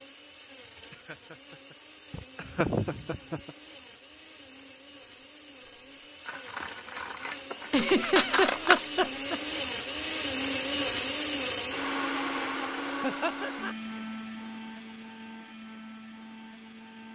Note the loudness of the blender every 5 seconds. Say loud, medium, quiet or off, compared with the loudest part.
quiet, medium, loud, quiet.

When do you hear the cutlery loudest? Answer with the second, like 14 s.
8 s.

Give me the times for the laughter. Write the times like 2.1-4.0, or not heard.
0.9-1.4, 2.1-3.5, 7.7-9.4, 13.0-13.8.